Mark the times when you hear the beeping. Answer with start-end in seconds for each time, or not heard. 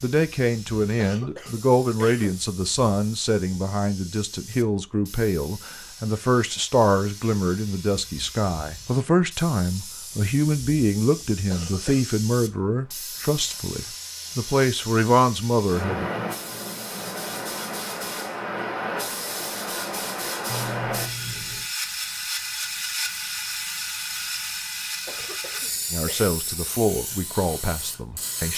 20.4-21.7.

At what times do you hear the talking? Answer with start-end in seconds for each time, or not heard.
0.0-16.1, 25.9-28.5.